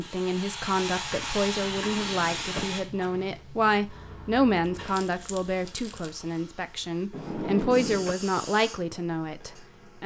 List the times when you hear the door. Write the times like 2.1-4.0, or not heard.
1.6-2.8, 7.1-8.2.